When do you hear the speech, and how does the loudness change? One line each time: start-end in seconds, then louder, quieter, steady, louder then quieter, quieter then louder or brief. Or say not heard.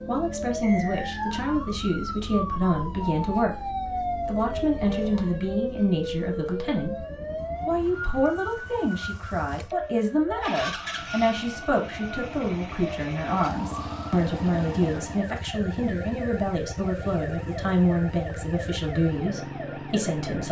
0.1-7.0 steady
7.7-20.4 steady.